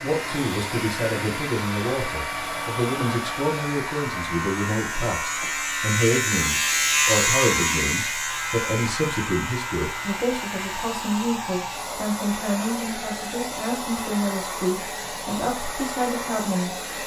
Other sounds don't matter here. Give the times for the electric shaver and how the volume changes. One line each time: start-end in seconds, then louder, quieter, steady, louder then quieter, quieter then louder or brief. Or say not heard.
0.0-10.8 louder then quieter.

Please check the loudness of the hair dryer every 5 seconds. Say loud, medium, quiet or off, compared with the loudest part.
loud, medium, loud, loud.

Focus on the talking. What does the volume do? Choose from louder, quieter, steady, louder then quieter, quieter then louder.
steady.